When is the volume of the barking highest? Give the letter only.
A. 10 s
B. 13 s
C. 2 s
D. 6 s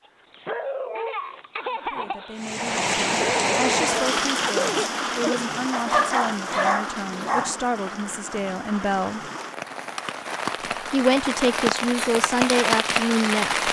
D.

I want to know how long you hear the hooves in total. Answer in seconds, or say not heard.
not heard.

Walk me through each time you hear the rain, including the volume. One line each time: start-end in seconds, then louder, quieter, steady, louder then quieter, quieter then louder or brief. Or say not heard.
2.4-13.6 quieter then louder.